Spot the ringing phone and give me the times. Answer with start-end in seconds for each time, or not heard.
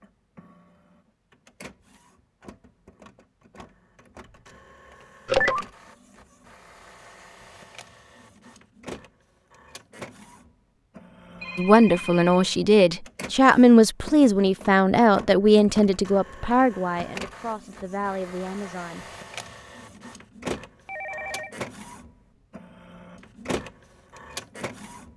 5.2-5.7, 11.4-12.5, 20.9-21.6.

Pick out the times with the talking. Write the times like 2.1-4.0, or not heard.
11.6-19.1.